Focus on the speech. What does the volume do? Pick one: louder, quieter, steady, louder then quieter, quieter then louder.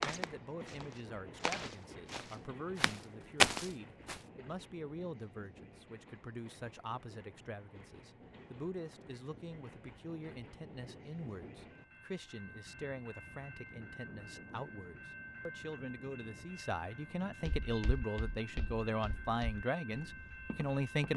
louder.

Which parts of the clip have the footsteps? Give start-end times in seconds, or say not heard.
0.0-4.2, 17.4-21.1.